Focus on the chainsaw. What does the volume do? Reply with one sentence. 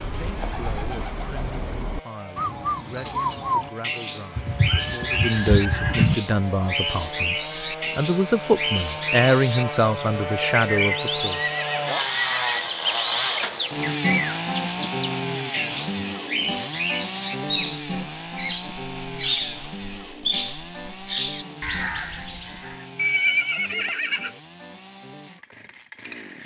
The loudness of the chainsaw goes up, then down.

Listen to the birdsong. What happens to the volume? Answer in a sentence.
The volume of the birdsong stays about the same.